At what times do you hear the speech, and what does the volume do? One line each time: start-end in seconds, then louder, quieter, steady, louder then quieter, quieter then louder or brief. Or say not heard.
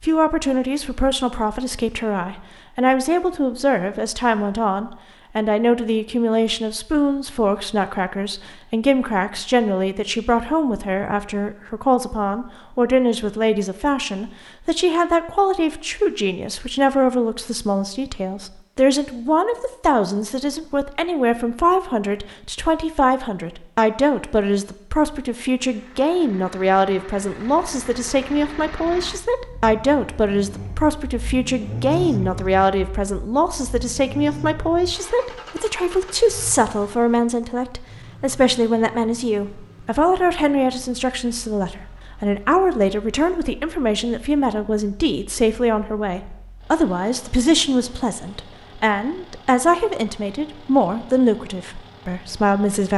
0.0-52.9 steady.